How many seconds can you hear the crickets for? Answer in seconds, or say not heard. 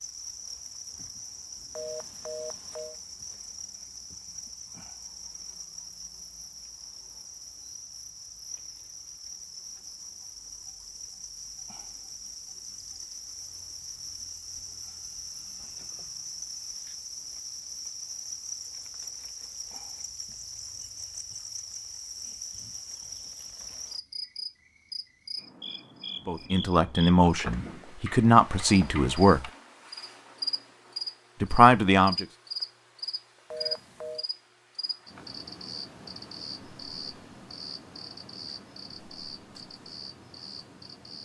41 s.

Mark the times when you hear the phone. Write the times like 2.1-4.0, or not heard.
1.8-3.0, 33.5-34.2.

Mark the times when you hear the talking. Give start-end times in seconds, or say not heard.
26.2-29.4, 31.4-32.2.